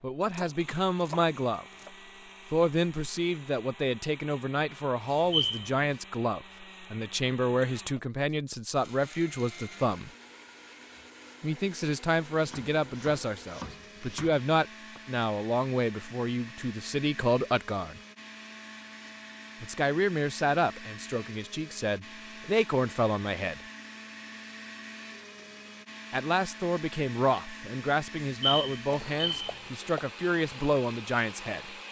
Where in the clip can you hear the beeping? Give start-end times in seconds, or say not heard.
5.1-5.7, 28.2-29.6.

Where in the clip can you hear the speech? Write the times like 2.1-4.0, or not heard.
0.0-1.6, 2.5-10.1, 11.4-18.0, 19.6-23.6, 26.1-31.7.